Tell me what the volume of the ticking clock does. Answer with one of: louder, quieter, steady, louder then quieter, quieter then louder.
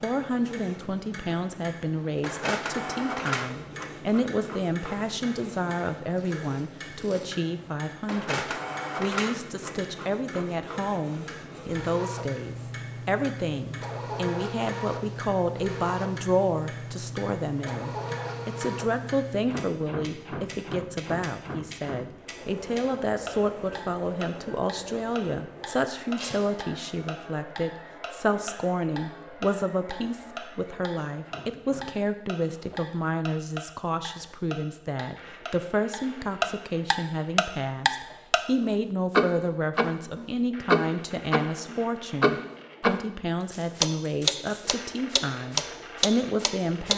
louder.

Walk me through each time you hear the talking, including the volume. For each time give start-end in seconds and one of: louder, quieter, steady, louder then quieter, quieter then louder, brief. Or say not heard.
0.0-46.9 steady.